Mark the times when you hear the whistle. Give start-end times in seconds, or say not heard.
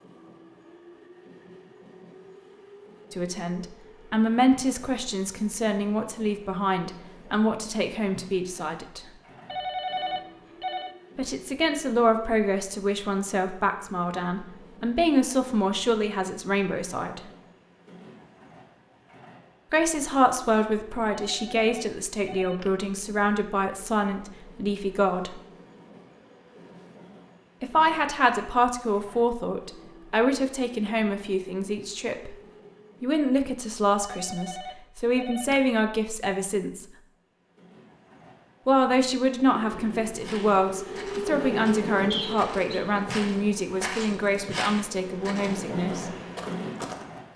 42.1-42.8.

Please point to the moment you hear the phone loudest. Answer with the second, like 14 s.
10 s.